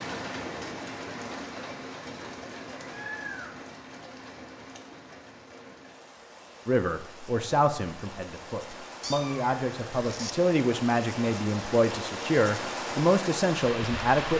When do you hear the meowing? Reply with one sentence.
You can hear the meowing from 2.8 to 3.6 s and from 9.0 to 10.3 s.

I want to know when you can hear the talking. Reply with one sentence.
You can hear the talking from 6.7 to 14.3 s.